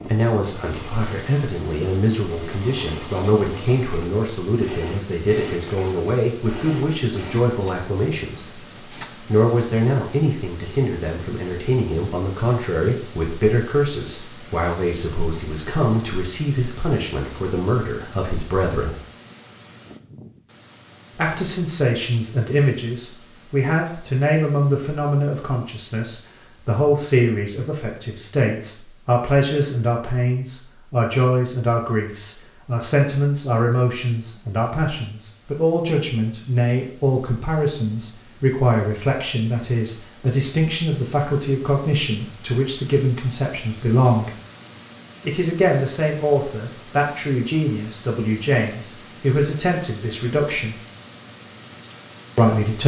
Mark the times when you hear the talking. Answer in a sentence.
You can hear the talking from 0.0 to 18.9 s, from 21.1 to 44.3 s, from 45.2 to 50.8 s and from 52.4 to 52.8 s.